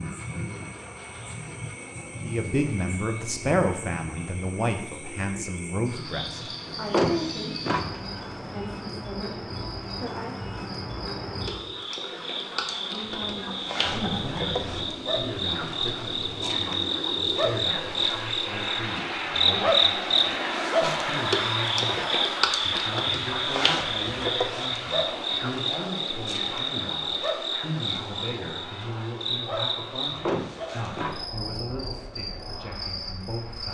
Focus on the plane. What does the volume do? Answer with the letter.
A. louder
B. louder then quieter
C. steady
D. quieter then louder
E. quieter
B.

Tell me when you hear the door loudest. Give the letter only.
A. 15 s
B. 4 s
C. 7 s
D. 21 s
C.